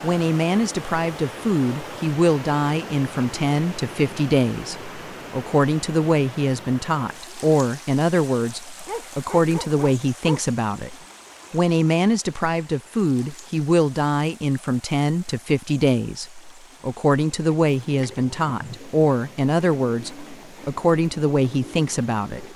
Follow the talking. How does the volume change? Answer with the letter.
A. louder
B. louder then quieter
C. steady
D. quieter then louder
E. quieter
C.